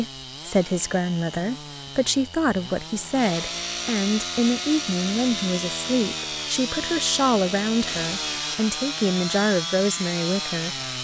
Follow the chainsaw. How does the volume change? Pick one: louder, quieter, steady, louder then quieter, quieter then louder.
louder.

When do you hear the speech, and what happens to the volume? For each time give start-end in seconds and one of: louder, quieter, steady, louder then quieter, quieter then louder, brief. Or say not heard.
0.0-10.9 steady.